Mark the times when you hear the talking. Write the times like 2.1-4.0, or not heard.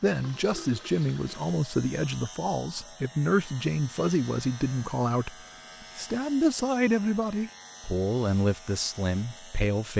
0.0-5.3, 6.0-9.9.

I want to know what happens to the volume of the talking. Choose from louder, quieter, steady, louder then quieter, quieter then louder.
steady.